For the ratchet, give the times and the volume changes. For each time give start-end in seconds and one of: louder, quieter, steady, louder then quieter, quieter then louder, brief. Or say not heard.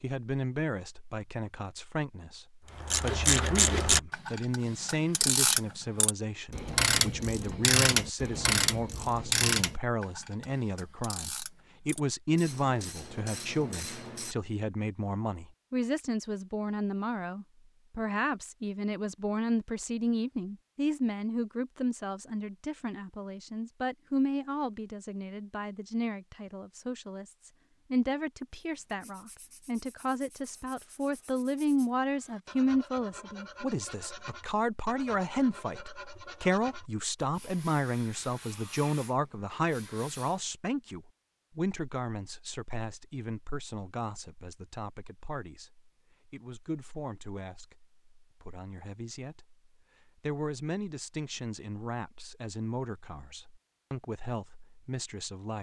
2.8-14.3 quieter.